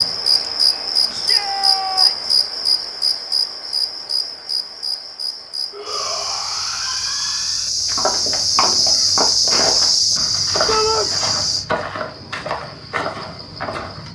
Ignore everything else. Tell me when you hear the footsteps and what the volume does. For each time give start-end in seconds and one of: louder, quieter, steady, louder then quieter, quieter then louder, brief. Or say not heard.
8.0-14.1 steady.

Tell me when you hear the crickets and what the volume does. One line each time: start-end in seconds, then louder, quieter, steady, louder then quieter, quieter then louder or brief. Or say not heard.
0.0-11.7 quieter then louder.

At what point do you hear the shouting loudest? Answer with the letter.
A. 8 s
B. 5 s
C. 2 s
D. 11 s
D.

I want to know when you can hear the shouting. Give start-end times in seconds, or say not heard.
1.1-2.3, 5.7-7.7, 10.7-11.1.